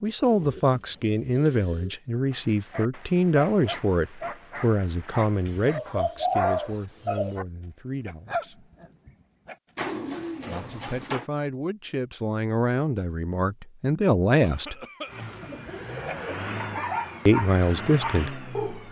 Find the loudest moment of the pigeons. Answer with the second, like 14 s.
6 s.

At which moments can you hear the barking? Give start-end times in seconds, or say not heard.
2.3-7.5, 8.1-9.6, 15.4-18.8.